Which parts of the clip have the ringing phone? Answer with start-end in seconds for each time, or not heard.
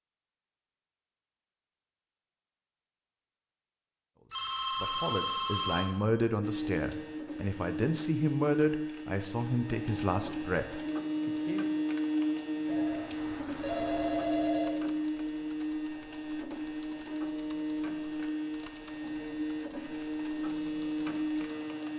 4.3-5.8, 12.7-14.7.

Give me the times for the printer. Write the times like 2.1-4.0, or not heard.
6.4-21.9.